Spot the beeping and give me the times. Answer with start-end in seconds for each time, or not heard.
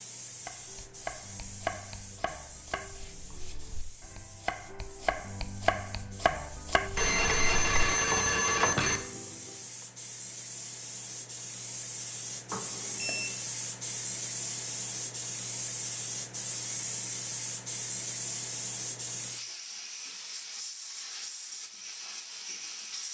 7.0-9.0, 12.5-13.3.